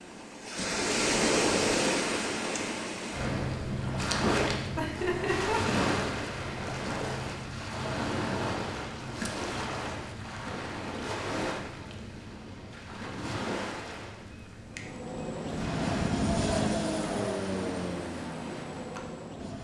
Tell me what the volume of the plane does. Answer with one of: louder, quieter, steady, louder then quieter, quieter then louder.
louder then quieter.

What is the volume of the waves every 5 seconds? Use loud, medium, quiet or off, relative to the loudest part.
loud, loud, medium, medium.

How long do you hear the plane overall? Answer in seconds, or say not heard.
5 s.